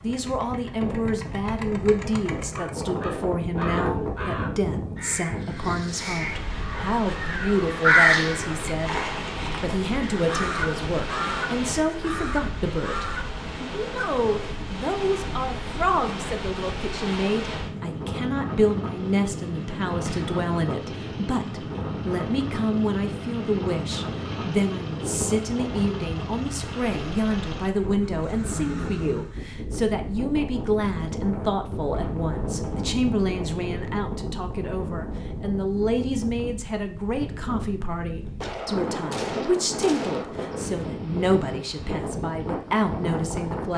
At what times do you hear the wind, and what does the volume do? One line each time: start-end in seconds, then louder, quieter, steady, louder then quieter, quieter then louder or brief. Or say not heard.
0.0-43.7 steady.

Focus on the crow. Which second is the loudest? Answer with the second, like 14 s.
8 s.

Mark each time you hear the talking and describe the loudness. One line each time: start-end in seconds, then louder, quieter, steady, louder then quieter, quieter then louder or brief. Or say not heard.
0.0-43.7 steady.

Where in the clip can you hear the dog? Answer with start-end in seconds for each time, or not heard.
not heard.